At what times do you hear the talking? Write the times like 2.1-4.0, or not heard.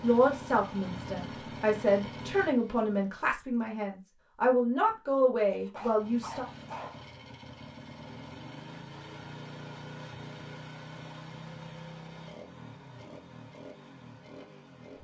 0.0-6.5.